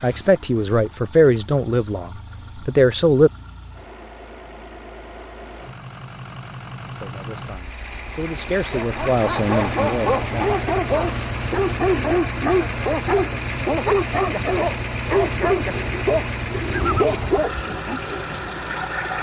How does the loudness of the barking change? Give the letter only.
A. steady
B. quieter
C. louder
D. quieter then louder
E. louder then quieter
A.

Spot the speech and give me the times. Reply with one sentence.
You can hear the speech from 0.0 to 3.3 s and from 7.0 to 10.4 s.